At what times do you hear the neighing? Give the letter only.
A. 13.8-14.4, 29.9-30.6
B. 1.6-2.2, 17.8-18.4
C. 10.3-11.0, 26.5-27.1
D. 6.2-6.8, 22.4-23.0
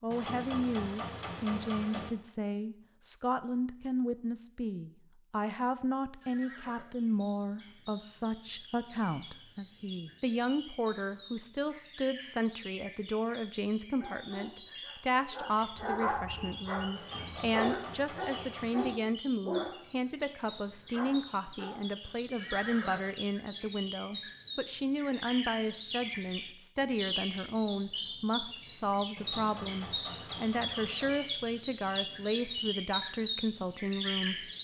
D.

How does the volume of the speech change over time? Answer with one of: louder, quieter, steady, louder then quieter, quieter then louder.
steady.